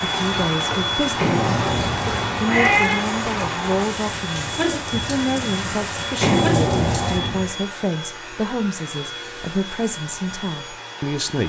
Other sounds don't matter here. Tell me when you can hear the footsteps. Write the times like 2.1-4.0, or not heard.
not heard.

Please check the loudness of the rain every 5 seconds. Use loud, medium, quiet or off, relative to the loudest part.
loud, loud, off.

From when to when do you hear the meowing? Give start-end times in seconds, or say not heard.
1.1-3.0, 6.2-7.5.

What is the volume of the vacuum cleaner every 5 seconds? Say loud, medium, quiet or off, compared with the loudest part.
loud, loud, medium.